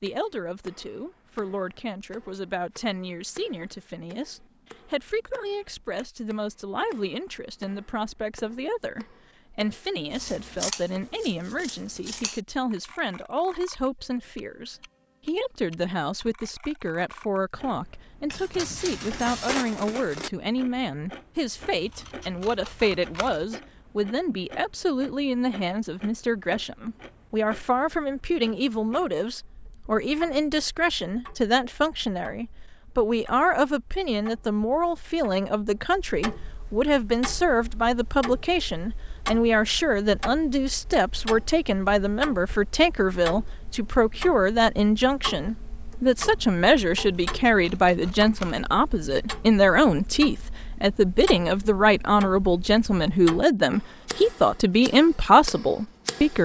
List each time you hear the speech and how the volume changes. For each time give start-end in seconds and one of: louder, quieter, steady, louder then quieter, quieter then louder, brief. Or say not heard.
0.0-56.4 louder.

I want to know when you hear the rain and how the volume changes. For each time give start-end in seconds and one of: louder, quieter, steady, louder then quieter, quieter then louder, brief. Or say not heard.
not heard.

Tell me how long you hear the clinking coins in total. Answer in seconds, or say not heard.
2 s.